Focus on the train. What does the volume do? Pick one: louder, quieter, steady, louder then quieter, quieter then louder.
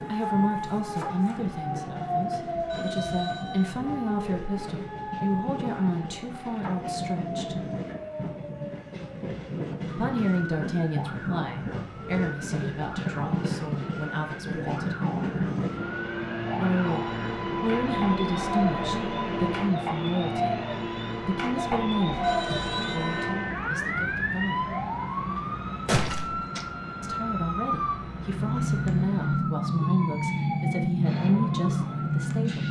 louder then quieter.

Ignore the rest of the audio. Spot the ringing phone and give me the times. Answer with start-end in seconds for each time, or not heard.
2.5-3.8, 22.1-23.2.